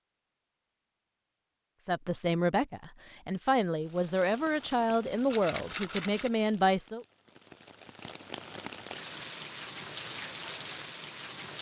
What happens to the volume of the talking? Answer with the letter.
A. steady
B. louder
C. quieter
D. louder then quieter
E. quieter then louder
A.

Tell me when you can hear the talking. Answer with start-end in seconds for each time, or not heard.
1.8-7.0.